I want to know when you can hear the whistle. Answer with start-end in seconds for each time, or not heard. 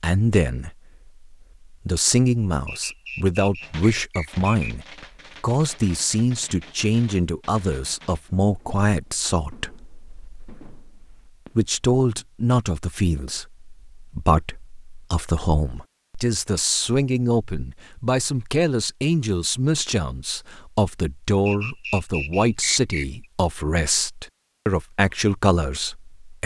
2.6-4.8, 21.4-23.2.